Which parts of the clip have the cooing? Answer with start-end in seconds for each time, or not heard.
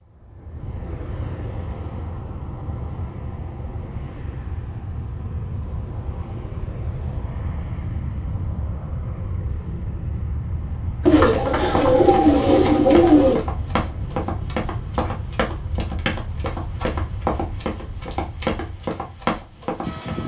11.1-13.4.